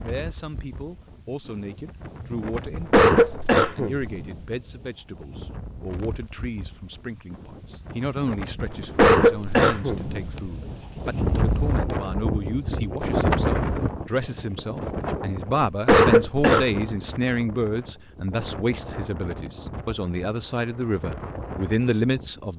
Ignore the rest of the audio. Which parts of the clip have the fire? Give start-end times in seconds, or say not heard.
not heard.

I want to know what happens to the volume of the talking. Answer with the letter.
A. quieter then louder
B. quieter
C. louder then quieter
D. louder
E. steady
D.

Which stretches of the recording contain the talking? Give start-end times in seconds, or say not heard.
0.0-22.5.